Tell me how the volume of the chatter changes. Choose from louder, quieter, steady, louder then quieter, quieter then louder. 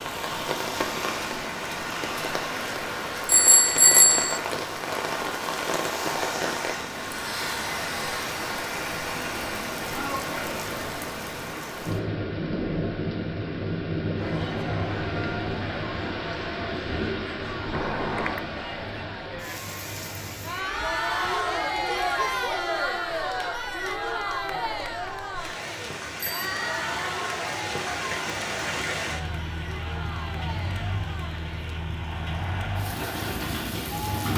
louder then quieter.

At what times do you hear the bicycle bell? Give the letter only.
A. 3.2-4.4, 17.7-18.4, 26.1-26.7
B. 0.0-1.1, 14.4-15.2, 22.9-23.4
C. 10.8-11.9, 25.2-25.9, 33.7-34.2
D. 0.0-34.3
A.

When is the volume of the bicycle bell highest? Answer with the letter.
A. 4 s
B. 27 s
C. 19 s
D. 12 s
A.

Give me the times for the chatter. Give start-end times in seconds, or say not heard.
14.2-34.3.